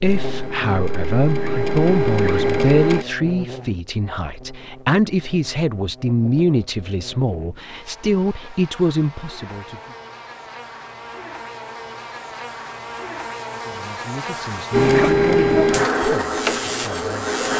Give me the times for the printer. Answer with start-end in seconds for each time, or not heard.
0.0-3.0, 14.7-17.5.